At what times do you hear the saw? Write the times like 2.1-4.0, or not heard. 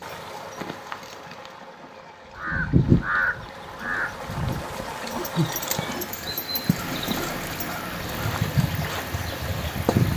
not heard.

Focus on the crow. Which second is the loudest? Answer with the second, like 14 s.
3 s.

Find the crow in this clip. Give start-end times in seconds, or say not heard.
2.4-8.3.